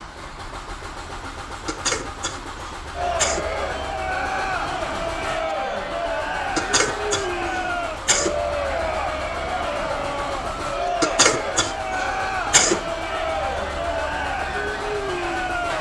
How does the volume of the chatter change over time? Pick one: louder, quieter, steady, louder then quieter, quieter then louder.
steady.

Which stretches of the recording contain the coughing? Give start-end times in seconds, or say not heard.
1.6-3.5, 6.5-8.4, 11.0-12.8.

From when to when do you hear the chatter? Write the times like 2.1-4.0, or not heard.
3.0-15.7.